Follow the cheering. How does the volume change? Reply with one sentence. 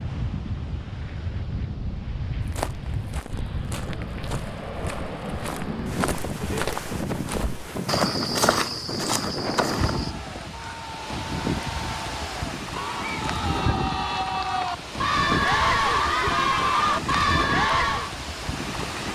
The volume of the cheering goes up.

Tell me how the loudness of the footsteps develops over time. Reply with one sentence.
The loudness of the footsteps goes up.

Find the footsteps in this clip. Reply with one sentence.
You can hear the footsteps from 2.4 to 10.2 s.